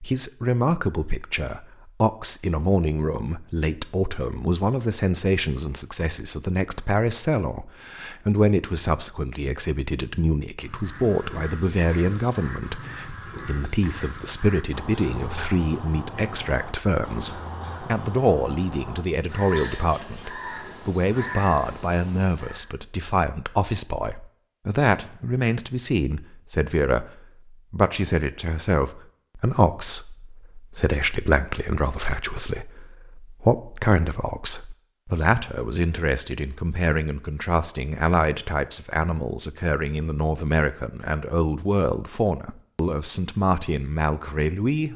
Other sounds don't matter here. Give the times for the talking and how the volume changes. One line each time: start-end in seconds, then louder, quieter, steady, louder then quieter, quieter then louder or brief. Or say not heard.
0.0-44.9 steady.